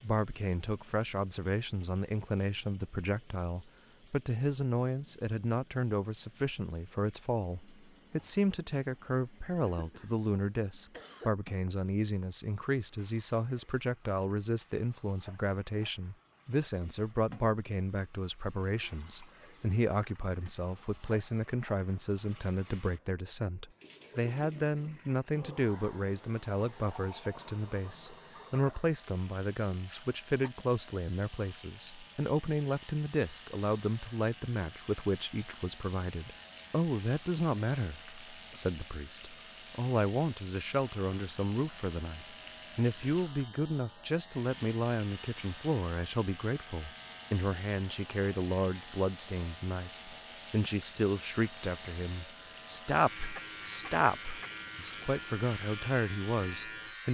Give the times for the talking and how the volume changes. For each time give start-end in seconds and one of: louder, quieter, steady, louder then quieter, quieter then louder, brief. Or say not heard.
0.0-57.0 steady.